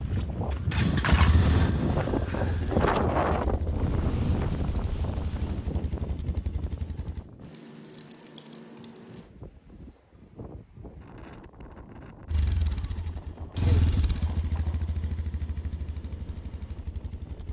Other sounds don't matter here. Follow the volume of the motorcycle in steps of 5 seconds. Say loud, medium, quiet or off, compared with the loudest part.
loud, medium, loud, quiet.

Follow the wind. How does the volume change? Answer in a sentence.
The volume of the wind goes down.